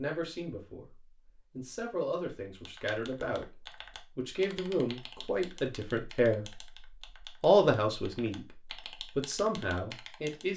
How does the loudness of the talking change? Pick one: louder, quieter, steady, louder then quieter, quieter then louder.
louder then quieter.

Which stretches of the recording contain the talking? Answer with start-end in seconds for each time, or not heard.
0.0-6.6, 7.4-10.5.